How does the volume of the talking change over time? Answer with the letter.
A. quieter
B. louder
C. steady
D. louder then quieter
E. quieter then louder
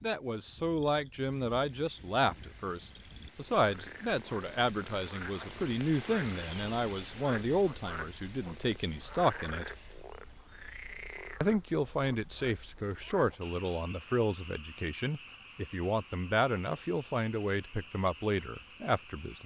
C.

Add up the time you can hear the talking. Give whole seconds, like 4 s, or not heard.
18 s.